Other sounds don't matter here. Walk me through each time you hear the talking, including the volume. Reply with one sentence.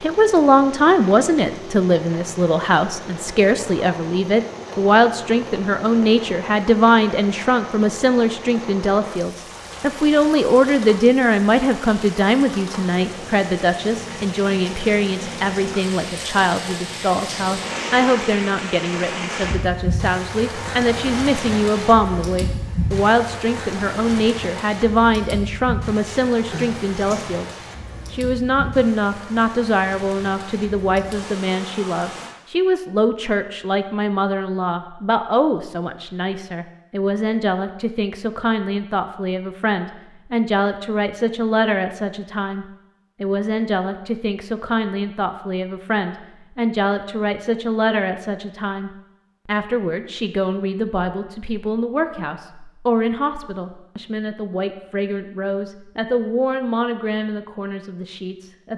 The talking can be heard from 0.0 to 58.7 s, getting quieter.